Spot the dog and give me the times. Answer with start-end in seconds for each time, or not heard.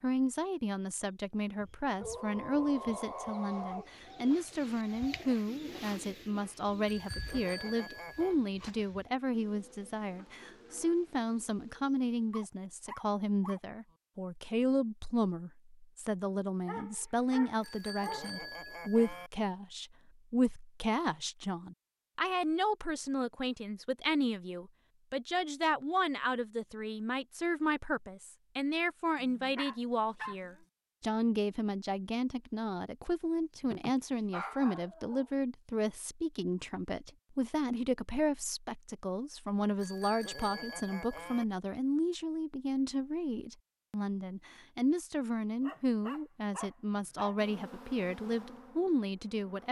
1.9-4.4, 12.3-13.6, 16.6-18.4, 29.1-30.6, 33.6-35.3, 45.6-47.4.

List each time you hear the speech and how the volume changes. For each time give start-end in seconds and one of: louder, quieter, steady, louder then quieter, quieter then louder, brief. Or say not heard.
0.0-49.6 steady.